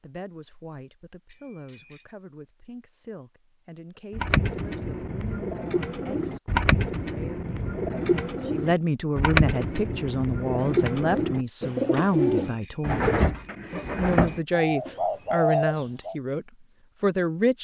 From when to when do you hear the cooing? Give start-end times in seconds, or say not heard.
4.1-16.1.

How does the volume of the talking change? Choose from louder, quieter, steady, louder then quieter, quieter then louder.
louder.